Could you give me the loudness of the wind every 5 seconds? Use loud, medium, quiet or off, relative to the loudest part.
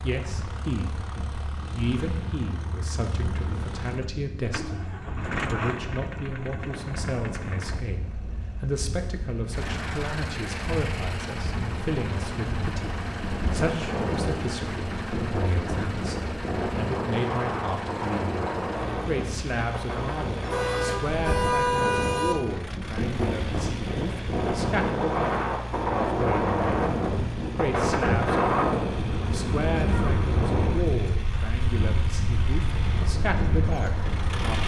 quiet, quiet, medium, medium, medium, loud, medium.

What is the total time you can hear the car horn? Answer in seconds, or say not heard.
2 s.